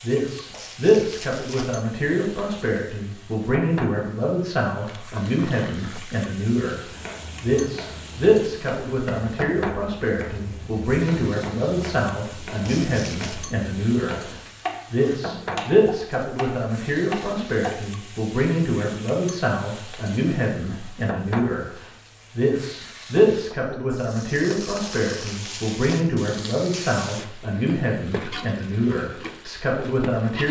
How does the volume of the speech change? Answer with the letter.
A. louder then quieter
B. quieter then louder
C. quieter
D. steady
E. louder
D.